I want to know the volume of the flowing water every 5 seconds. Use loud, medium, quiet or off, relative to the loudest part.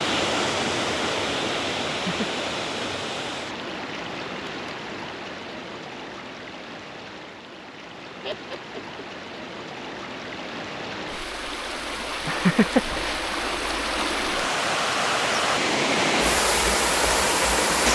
medium, quiet, medium, loud.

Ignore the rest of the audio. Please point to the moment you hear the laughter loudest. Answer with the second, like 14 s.
13 s.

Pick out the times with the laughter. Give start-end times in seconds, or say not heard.
1.9-2.5, 8.2-9.1, 12.2-13.2.